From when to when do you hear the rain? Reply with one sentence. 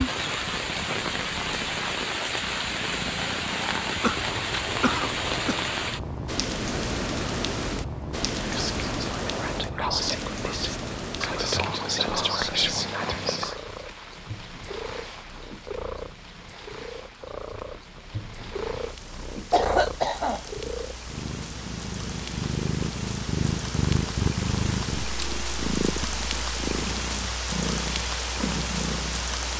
The rain can be heard from 0.0 to 29.5 s.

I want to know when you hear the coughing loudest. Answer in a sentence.
The loudest moment of the coughing is at 20 seconds.